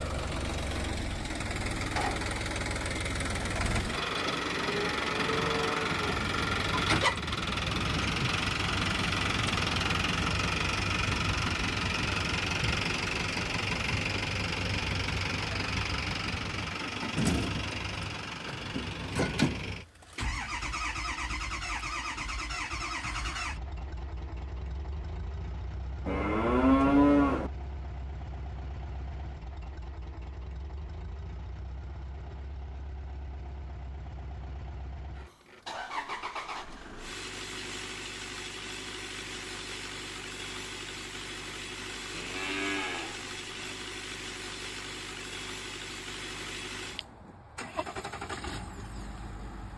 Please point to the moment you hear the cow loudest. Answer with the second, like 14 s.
27 s.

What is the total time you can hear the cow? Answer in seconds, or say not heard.
5 s.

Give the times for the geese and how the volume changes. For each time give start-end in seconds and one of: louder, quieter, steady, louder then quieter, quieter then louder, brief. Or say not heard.
not heard.